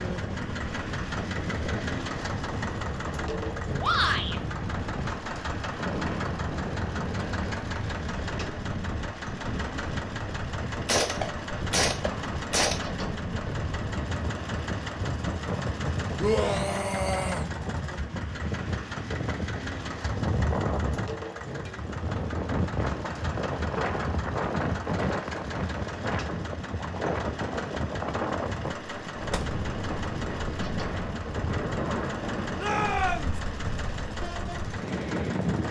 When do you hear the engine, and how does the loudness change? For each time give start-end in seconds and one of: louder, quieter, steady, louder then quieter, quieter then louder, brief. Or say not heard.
0.0-35.6 steady.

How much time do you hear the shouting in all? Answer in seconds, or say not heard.
3 s.